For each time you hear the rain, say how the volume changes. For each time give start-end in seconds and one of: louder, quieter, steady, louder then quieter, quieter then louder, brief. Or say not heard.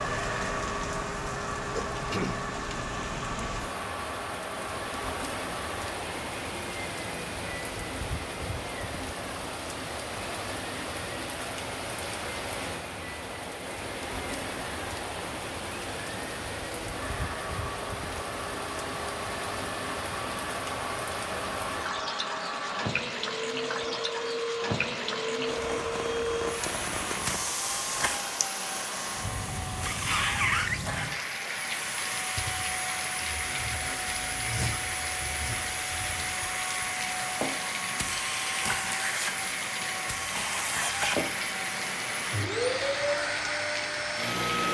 0.0-44.7 steady.